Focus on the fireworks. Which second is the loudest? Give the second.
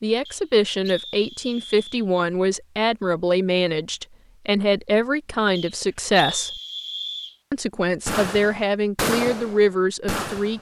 9 s.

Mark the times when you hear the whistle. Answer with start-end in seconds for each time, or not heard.
0.2-2.0, 5.5-7.3.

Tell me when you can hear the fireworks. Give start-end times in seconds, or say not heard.
8.1-10.5.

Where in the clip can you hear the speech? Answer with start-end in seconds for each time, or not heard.
0.0-6.6, 7.5-10.5.